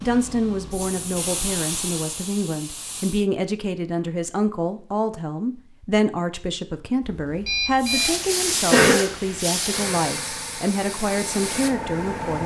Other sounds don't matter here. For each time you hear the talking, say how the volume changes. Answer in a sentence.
You can hear the talking from 0.0 to 12.4 s, at a steady volume.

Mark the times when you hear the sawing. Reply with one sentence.
You can't hear the sawing here.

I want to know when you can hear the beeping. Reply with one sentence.
You can hear the beeping from 7.0 to 8.2 s.